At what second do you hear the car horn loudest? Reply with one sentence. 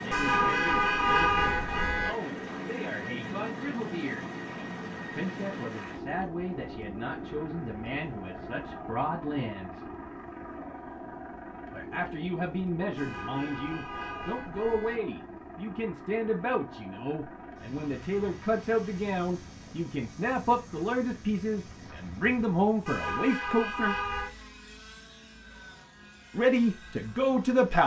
The volume of the car horn peaks at 1 second.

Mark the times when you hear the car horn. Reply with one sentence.
The car horn can be heard from 0.1 to 2.1 s, from 12.9 to 15.0 s and from 22.9 to 24.3 s.